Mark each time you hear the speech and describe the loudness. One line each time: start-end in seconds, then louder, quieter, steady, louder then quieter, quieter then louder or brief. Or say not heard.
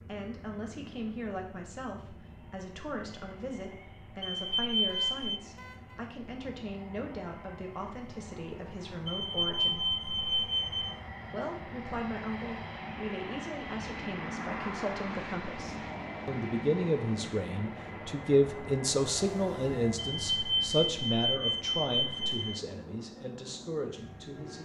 0.0-9.9 steady
11.2-24.6 louder then quieter.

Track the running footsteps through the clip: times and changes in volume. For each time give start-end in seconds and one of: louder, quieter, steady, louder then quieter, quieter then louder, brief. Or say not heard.
not heard.